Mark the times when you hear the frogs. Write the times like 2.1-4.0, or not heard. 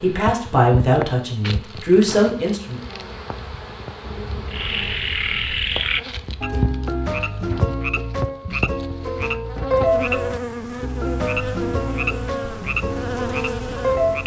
4.5-14.2.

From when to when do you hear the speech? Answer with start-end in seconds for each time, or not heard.
0.0-2.8.